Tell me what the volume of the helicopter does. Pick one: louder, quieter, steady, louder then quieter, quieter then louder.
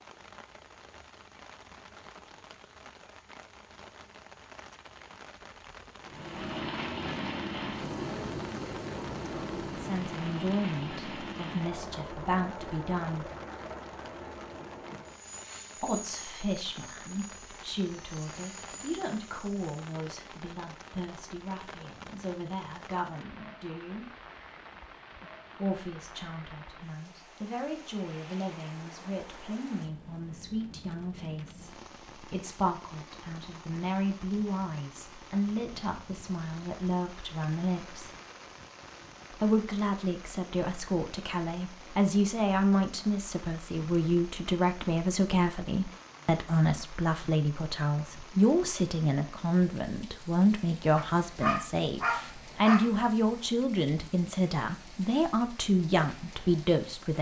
quieter.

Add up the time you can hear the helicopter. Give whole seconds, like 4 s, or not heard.
14 s.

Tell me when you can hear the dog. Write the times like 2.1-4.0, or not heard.
51.0-53.0.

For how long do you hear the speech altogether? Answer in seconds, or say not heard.
42 s.